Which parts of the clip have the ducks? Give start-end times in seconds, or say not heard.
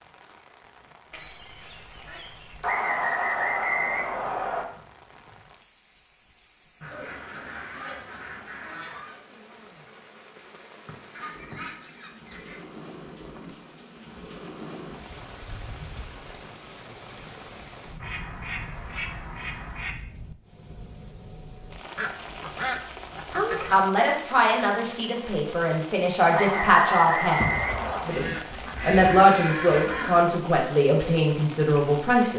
1.1-2.8, 6.8-9.2, 11.2-12.7, 18.0-19.9, 21.9-23.9, 27.4-30.2.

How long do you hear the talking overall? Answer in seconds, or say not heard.
9 s.